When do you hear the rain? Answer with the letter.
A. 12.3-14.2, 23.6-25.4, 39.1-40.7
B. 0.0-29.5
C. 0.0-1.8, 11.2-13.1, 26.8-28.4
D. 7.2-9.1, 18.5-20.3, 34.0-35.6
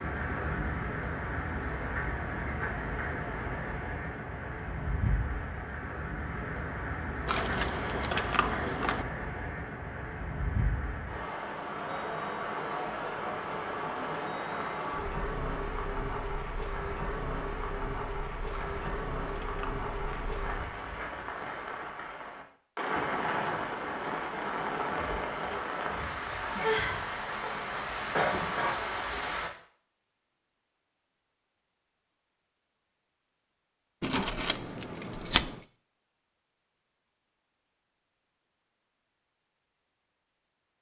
B.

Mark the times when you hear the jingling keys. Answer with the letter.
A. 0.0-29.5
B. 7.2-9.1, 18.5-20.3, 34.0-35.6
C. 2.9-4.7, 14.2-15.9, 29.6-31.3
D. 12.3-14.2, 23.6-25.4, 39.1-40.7
B.